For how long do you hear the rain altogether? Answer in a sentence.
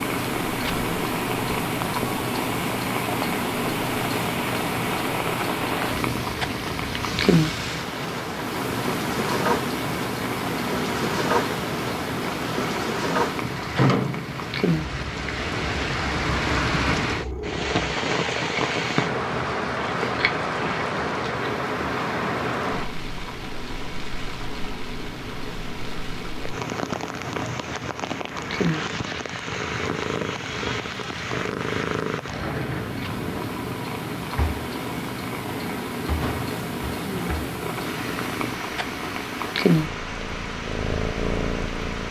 You can hear the rain for 42 seconds altogether.